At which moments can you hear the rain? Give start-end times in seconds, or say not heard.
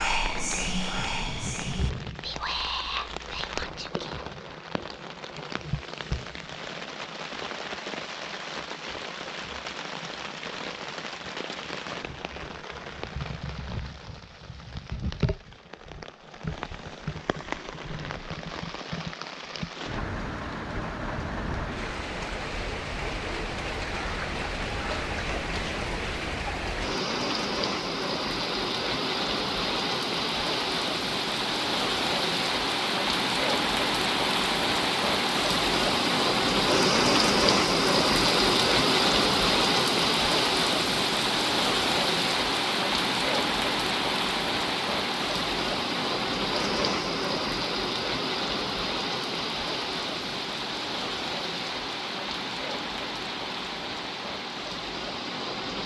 0.0-55.8.